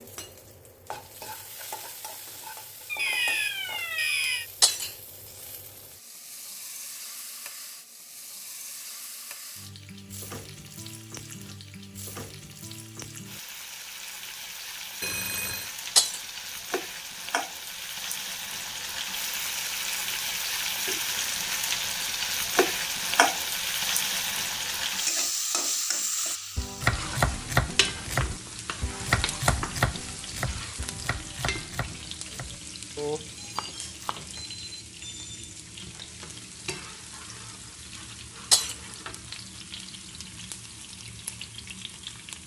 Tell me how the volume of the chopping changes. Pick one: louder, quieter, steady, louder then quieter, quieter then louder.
quieter then louder.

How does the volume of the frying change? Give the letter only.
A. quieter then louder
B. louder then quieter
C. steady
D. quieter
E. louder
B.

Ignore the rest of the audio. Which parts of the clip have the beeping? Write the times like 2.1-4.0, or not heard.
2.9-4.5, 15.0-15.8, 33.2-35.5.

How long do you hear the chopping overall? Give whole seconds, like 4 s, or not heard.
8 s.